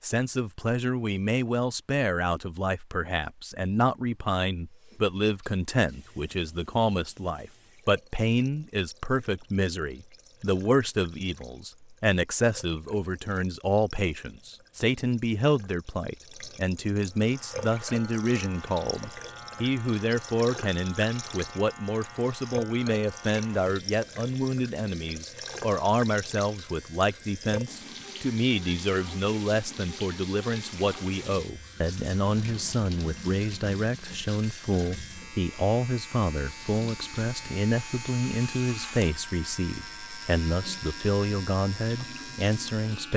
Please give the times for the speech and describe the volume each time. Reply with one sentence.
You can hear the speech from 0.0 to 43.1 s, at a steady volume.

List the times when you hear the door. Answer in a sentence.
The door can't be heard in this clip.